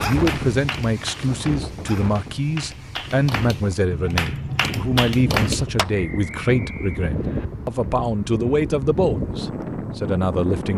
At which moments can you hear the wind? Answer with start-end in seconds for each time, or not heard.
0.0-10.7.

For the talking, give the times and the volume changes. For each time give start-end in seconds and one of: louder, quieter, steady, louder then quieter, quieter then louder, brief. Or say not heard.
0.0-10.7 steady.